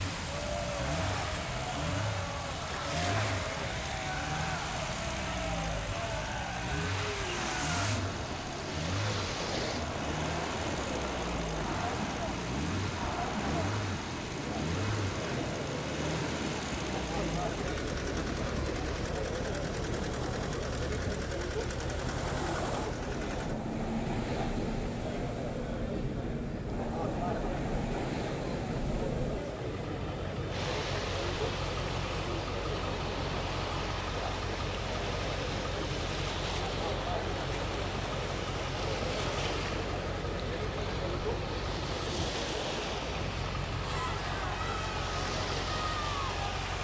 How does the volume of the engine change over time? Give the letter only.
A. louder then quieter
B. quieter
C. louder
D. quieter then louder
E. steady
E.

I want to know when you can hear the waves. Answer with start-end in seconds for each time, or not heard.
0.0-46.8.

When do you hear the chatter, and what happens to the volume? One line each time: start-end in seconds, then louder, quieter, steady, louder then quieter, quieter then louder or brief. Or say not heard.
0.2-46.7 steady.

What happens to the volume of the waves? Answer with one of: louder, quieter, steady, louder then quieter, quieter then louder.
steady.